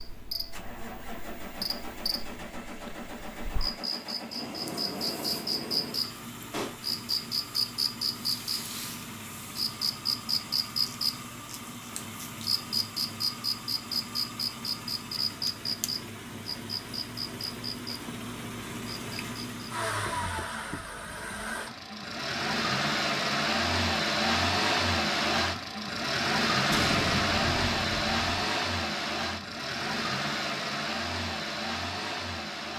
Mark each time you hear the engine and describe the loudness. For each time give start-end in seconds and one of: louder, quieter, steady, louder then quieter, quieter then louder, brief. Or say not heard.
0.0-32.7 louder.